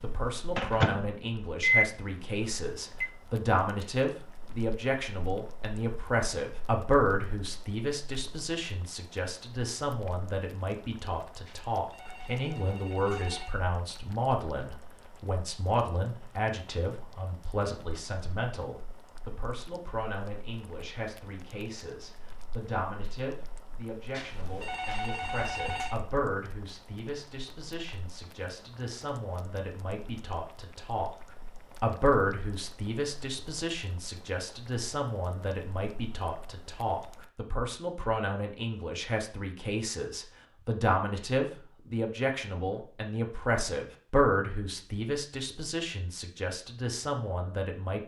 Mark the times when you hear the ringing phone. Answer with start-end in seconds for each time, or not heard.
11.4-13.6, 24.1-25.9.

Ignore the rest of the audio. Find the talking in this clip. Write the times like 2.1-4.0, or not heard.
0.0-31.1, 31.8-48.0.